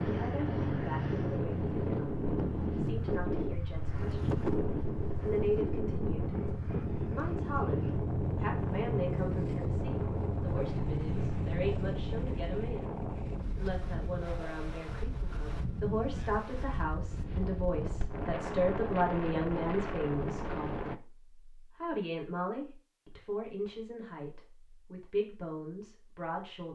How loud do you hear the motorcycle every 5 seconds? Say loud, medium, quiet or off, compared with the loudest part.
loud, loud, loud, off, off, off.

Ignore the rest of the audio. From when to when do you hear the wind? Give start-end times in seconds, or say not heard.
0.0-21.0.